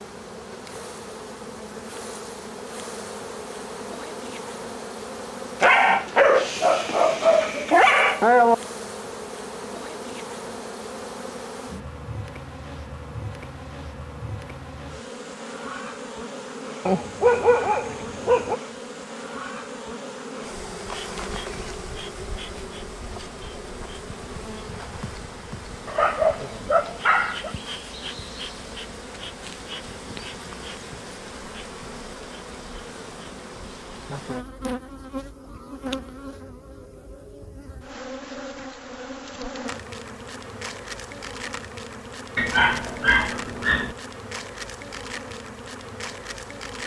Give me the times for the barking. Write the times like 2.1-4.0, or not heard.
5.6-8.6, 16.9-18.6, 25.9-27.5, 42.4-44.0.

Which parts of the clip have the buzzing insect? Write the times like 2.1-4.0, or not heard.
0.0-46.8.